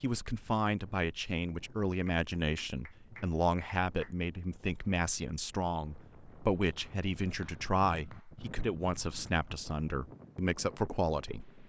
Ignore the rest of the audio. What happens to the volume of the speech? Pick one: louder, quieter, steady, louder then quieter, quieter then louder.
steady.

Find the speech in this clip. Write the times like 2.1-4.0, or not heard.
0.0-11.6.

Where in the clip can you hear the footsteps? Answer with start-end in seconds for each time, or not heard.
not heard.